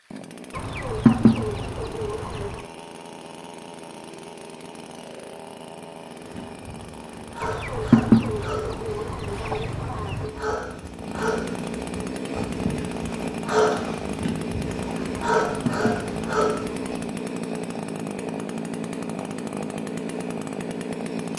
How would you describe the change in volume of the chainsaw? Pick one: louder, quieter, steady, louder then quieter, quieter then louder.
louder.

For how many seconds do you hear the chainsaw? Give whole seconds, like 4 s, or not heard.
21 s.